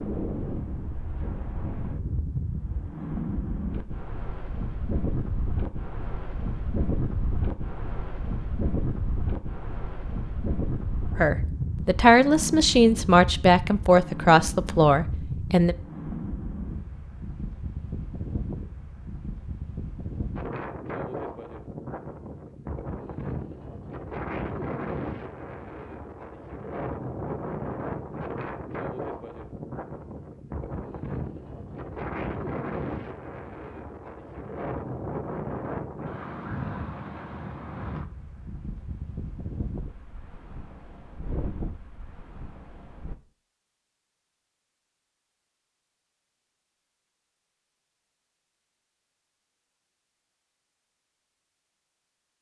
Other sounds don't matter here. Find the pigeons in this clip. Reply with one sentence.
The pigeons can't be heard in this clip.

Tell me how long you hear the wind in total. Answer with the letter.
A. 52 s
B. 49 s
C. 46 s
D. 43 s
D.